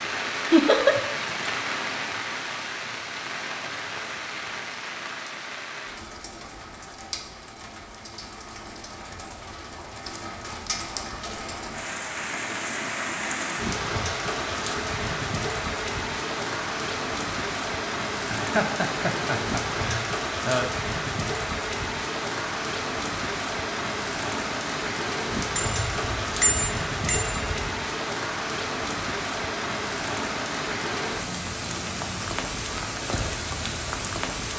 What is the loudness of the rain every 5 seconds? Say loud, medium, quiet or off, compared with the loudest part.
loud, medium, loud, loud, loud, loud, loud.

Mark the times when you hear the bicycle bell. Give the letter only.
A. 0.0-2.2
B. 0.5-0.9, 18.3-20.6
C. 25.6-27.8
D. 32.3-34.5
C.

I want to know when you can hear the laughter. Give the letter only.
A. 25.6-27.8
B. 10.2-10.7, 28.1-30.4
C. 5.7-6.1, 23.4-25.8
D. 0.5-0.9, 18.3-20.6
D.